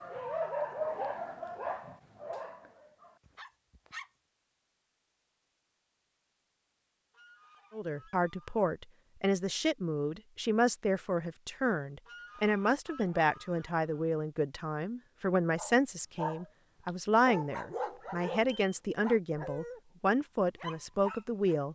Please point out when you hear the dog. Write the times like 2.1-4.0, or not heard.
0.0-4.1, 15.6-19.8, 20.6-21.6.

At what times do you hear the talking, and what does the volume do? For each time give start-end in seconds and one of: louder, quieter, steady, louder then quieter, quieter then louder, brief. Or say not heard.
7.7-21.7 steady.